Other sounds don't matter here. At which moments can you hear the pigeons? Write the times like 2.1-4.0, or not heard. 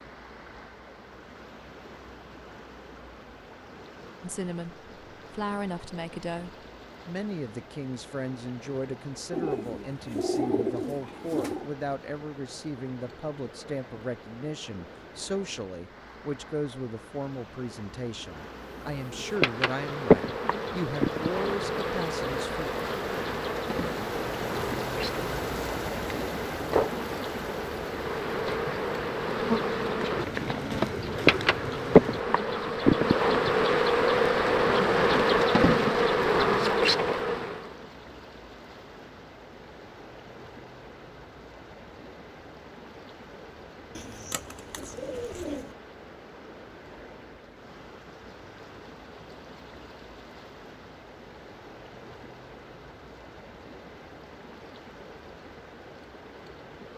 9.3-11.7, 30.1-32.2, 44.0-45.7.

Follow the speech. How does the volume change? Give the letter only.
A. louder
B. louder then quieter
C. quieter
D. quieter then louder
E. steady
E.